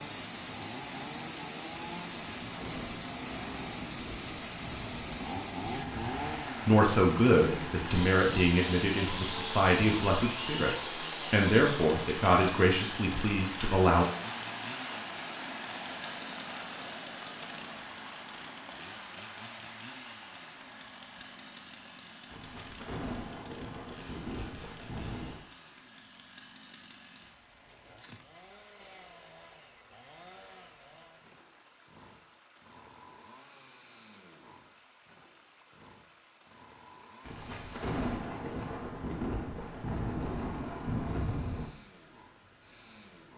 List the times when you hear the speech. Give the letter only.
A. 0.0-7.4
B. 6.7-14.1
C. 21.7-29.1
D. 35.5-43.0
B.